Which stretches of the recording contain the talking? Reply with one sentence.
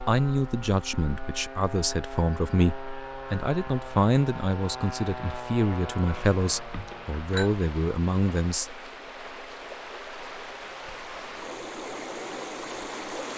You can hear the talking from 0.1 to 8.7 s.